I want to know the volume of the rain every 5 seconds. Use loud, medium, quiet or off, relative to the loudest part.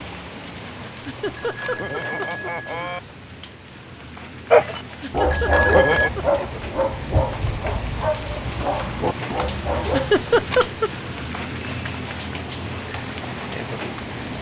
medium, loud, loud.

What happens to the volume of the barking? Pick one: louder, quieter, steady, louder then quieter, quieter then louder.
quieter.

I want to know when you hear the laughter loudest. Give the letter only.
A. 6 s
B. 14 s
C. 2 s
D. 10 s
D.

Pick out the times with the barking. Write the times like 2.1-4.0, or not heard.
4.5-10.2.